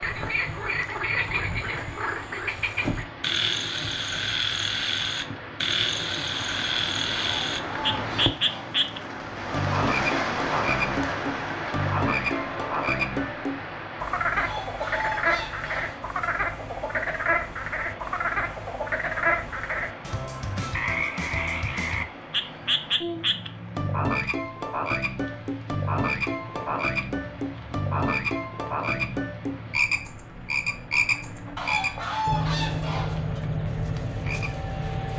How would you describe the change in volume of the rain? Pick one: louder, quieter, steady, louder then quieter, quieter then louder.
louder then quieter.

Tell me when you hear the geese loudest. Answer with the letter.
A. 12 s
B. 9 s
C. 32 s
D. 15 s
C.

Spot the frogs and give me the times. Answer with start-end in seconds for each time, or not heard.
0.0-35.1.